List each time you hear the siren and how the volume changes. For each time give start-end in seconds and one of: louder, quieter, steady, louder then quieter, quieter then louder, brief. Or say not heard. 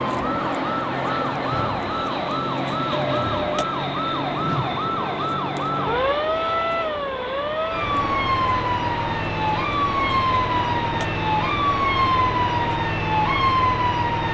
0.0-14.2 louder.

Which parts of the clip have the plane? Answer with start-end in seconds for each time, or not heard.
0.0-12.8.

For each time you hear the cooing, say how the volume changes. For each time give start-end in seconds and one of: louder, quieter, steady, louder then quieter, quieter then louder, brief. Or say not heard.
not heard.